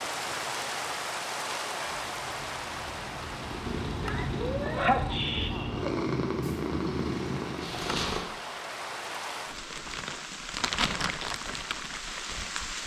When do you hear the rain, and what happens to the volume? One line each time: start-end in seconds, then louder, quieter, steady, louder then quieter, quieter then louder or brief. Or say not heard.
0.0-12.8 quieter then louder.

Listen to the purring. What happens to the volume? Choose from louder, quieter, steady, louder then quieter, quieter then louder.
louder.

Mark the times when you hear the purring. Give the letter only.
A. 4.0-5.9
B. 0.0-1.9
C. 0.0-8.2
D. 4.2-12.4
C.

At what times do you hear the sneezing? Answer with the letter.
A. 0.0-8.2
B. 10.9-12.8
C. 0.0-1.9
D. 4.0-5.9
D.